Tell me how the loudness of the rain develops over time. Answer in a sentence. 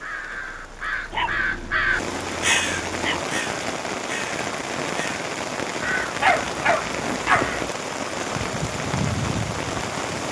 The loudness of the rain goes up.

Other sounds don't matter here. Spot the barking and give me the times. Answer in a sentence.
You can hear the barking from 1.1 to 3.2 s and from 6.2 to 7.5 s.